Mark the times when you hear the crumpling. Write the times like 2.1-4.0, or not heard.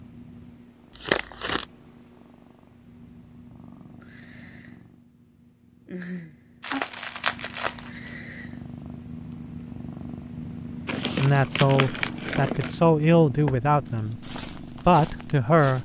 0.9-1.6, 6.6-8.1, 10.8-12.8.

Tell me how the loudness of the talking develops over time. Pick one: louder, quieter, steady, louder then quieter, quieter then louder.
quieter then louder.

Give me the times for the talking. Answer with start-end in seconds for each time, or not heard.
11.2-15.7.